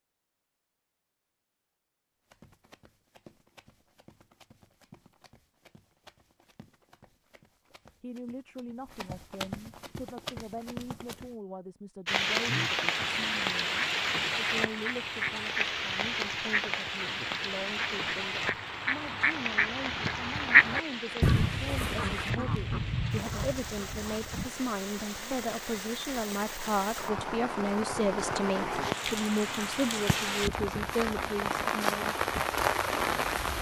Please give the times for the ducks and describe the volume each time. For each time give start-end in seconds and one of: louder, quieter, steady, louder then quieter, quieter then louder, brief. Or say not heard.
12.4-24.5 louder then quieter.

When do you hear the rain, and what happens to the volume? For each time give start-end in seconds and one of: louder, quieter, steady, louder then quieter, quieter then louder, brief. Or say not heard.
12.1-33.5 quieter then louder.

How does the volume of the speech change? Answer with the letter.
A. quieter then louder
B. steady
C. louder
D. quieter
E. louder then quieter
C.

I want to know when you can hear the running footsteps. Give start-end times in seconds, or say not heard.
2.2-11.3.